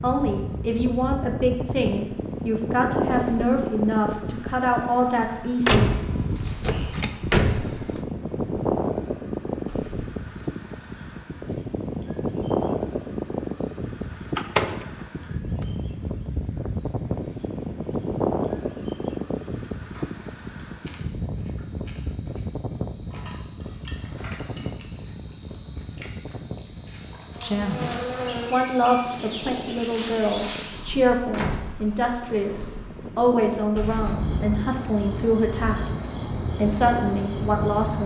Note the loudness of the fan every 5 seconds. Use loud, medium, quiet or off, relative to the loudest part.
loud, loud, loud, loud, medium, medium, medium, off.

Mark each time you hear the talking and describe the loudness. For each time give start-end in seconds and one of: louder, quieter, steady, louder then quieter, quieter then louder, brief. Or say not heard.
0.0-5.8 steady
27.4-38.0 steady.